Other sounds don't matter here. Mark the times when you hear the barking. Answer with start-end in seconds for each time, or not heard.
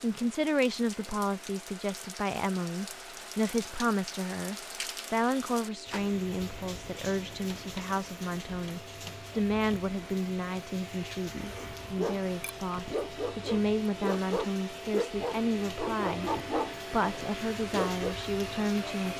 11.6-18.1.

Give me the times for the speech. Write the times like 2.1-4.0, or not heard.
0.0-16.3, 16.9-19.1.